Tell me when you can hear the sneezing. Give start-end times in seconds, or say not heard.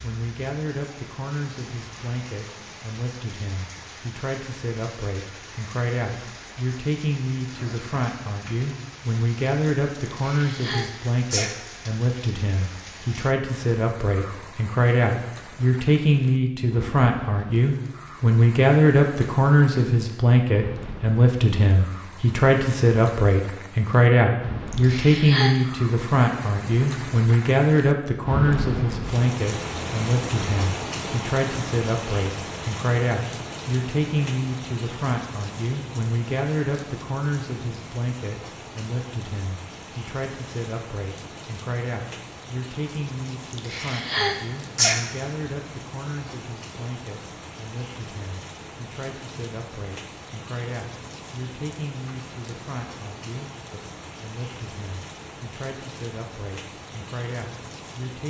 10.1-11.7, 24.7-25.6, 43.5-45.1.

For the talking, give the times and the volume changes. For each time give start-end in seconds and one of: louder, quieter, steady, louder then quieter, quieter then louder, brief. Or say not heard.
0.0-58.2 louder then quieter.